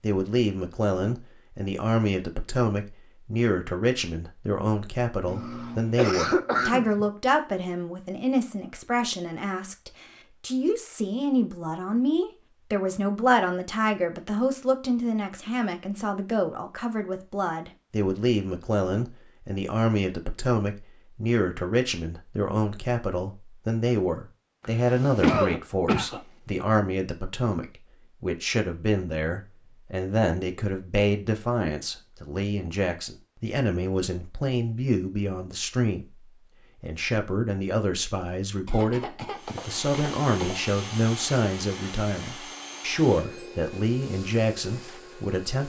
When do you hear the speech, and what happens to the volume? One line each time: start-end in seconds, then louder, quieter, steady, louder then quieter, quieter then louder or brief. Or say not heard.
0.0-45.6 steady.